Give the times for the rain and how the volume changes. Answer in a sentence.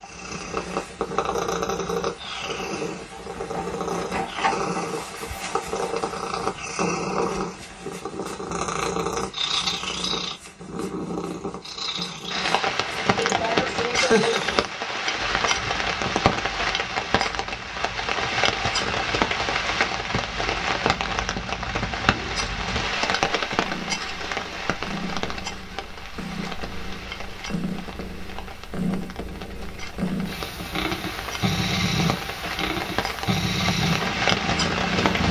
The rain can be heard from 12.3 to 35.2 s, getting quieter then louder.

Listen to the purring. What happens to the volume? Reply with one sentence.
The loudness of the purring goes down, then up.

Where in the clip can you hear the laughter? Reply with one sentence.
You can hear the laughter from 13.2 to 14.4 s.